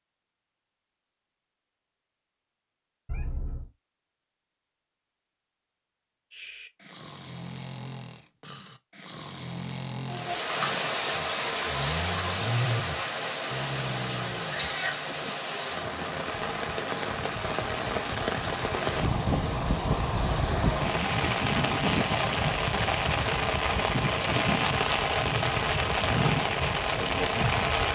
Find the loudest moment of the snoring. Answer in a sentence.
The volume of the snoring peaks at 13 seconds.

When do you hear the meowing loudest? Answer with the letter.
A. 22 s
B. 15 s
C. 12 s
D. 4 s
B.